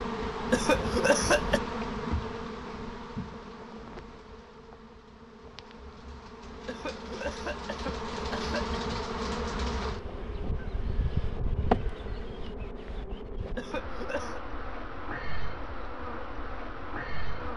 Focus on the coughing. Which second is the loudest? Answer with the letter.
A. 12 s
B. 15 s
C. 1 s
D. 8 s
C.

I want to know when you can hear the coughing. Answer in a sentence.
The coughing can be heard from 0.5 to 1.6 s, from 6.7 to 8.8 s and from 13.6 to 14.4 s.